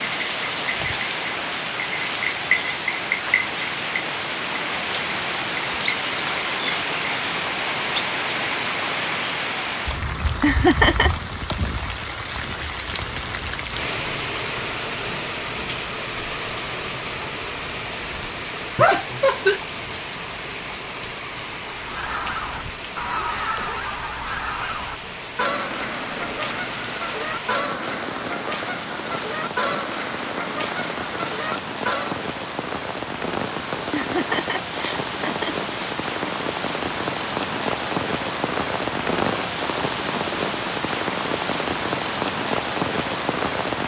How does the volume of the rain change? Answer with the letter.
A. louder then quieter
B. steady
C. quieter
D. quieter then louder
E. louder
D.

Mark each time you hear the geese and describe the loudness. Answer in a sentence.
You can hear the geese from 21.6 to 32.2 s, at a steady volume.